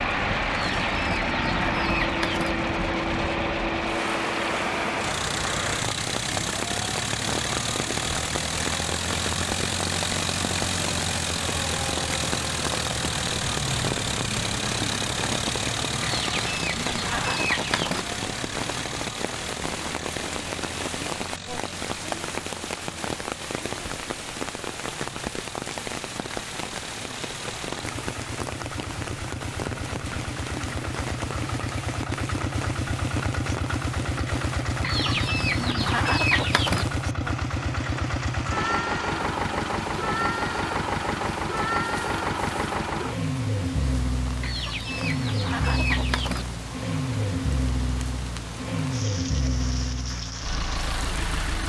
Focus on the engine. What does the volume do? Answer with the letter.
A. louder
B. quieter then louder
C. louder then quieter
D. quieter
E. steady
B.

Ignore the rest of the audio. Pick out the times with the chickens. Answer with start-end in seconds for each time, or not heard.
0.6-2.5, 16.0-18.1, 34.8-36.9, 44.4-46.5.